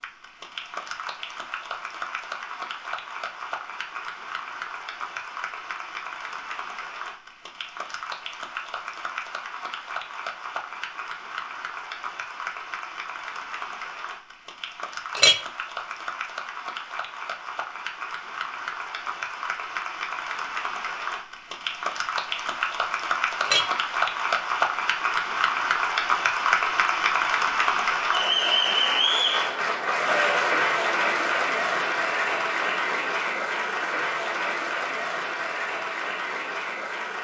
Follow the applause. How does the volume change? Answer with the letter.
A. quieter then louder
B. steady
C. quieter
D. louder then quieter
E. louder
E.